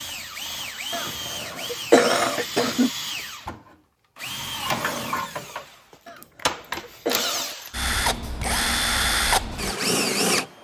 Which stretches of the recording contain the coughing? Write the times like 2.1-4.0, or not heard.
0.9-2.9, 6.0-7.5.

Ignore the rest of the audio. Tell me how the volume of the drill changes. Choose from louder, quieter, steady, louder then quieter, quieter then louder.
louder.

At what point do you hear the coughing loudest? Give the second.
2 s.